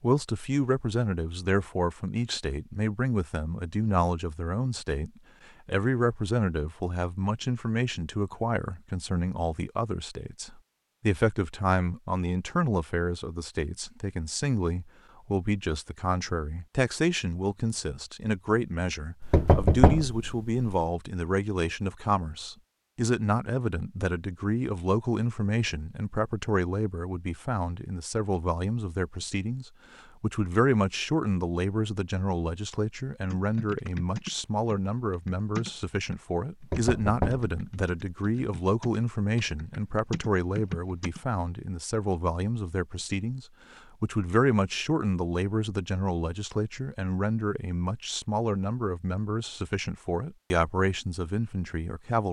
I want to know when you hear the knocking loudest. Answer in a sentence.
The volume of the knocking peaks at 20 seconds.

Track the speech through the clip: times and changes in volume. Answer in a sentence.
The speech can be heard from 0.0 to 52.2 s, at a steady volume.